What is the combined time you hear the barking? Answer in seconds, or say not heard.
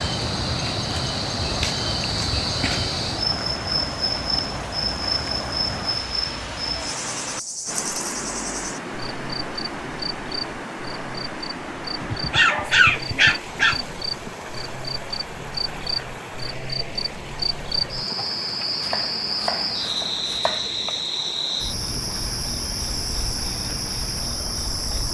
2 s.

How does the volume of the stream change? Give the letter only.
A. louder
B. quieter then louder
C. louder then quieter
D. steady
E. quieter
E.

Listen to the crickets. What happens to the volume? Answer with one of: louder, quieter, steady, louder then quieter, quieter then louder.
quieter then louder.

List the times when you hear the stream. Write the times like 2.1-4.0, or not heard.
0.0-25.0.